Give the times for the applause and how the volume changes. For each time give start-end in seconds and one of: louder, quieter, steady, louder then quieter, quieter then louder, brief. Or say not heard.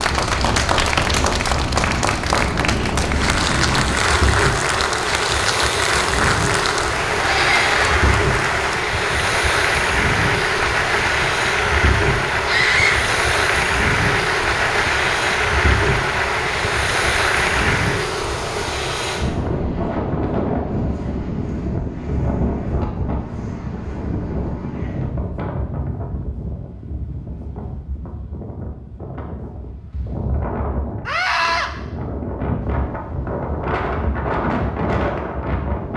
0.0-18.2 steady.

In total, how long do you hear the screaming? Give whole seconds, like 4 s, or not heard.
2 s.